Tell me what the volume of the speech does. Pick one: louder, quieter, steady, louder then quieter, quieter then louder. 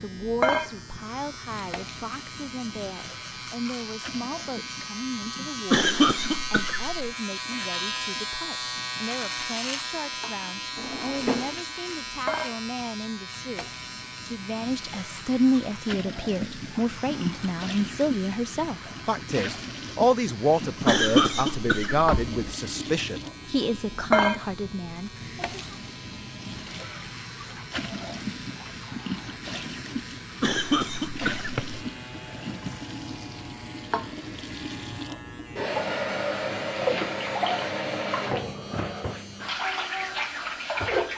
louder.